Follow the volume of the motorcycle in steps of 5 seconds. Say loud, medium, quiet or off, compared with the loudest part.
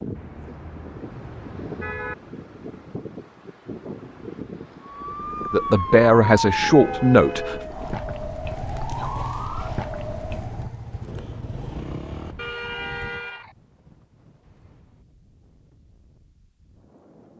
off, loud, loud, off.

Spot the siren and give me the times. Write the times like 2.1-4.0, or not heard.
4.8-10.8.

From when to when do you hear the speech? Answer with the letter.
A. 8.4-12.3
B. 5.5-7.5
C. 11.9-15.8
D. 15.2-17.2
B.